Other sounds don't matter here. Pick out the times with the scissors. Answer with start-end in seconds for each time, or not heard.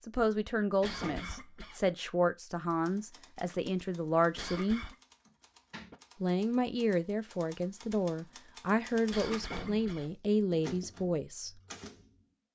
not heard.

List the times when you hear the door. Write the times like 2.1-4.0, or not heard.
0.3-1.4, 5.2-6.0, 8.8-10.1.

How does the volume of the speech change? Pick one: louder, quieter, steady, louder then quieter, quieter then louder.
steady.